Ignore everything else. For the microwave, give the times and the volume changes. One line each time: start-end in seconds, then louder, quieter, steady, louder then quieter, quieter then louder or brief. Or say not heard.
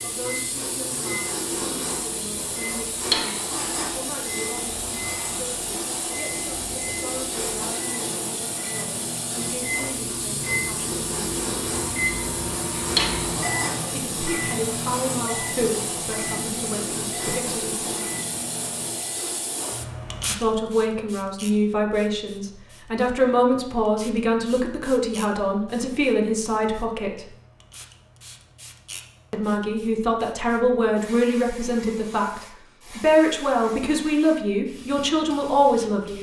0.0-19.3 louder then quieter.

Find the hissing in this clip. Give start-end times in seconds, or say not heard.
0.0-36.1.